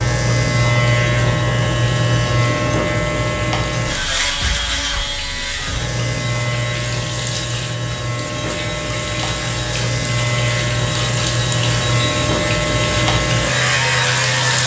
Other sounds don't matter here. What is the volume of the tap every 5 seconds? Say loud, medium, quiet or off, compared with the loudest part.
medium, medium, loud.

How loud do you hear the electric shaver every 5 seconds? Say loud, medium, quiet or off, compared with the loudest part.
loud, medium, loud.